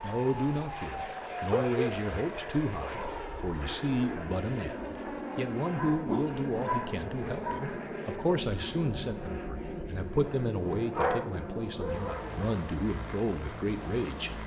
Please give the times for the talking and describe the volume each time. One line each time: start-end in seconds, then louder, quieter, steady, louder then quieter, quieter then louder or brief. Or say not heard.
0.0-14.4 steady.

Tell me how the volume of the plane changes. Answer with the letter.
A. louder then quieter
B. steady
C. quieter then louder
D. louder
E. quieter
B.